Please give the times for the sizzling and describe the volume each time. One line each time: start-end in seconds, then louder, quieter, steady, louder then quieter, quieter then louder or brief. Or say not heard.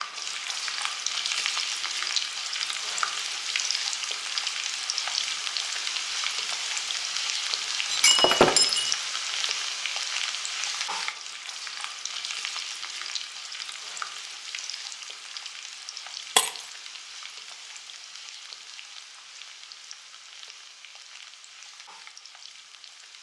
0.0-23.1 quieter.